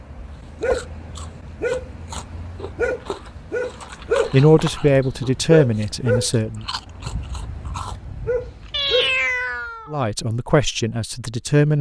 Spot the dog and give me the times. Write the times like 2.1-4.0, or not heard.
0.0-9.2.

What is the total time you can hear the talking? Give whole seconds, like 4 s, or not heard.
4 s.